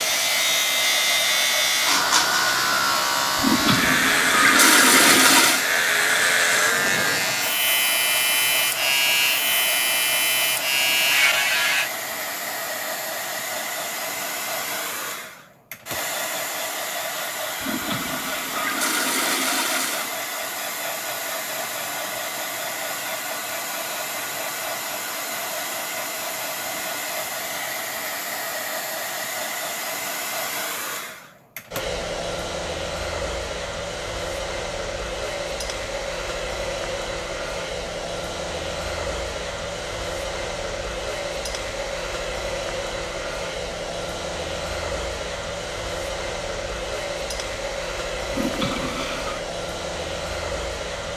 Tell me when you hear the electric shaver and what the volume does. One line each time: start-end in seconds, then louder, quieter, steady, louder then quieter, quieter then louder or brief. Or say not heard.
0.0-11.9 steady.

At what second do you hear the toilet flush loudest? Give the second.
5 s.